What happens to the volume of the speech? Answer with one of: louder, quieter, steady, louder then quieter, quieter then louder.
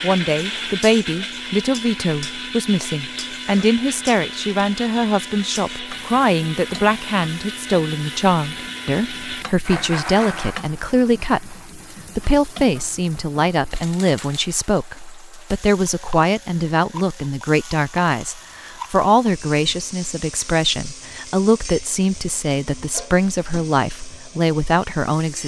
steady.